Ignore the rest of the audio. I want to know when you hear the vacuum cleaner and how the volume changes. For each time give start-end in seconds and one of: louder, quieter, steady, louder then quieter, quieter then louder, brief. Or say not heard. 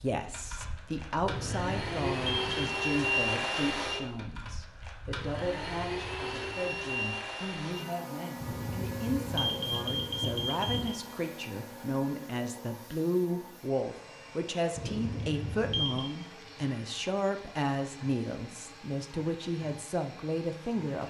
0.0-21.0 quieter.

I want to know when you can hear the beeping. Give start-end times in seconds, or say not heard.
1.2-2.6, 8.4-10.9, 14.8-16.1.